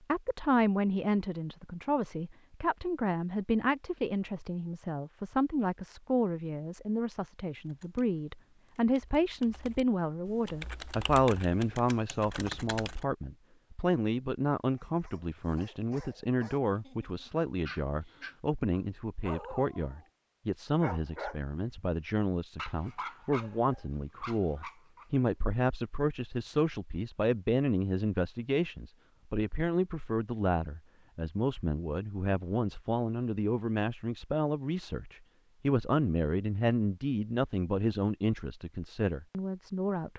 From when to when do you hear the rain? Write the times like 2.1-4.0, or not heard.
not heard.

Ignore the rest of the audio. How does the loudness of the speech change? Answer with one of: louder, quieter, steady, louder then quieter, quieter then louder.
steady.